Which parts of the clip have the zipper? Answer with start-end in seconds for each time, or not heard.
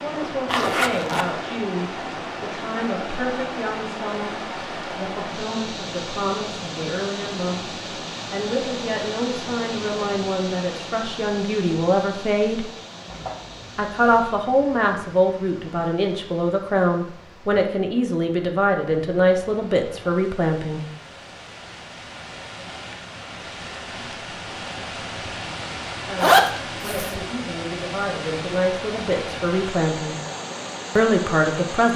0.5-1.2, 13.1-14.4, 26.2-27.1.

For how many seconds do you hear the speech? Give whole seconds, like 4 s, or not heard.
25 s.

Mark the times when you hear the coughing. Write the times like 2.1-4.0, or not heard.
not heard.